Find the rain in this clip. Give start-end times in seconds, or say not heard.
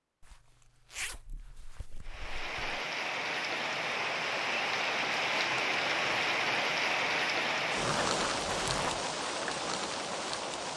2.0-10.7.